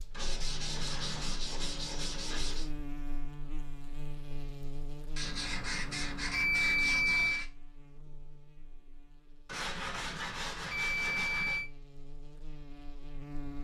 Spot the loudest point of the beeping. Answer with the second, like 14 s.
7 s.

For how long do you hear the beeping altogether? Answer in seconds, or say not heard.
5 s.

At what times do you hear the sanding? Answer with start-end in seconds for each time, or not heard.
0.1-2.7, 5.2-7.5, 9.4-11.6.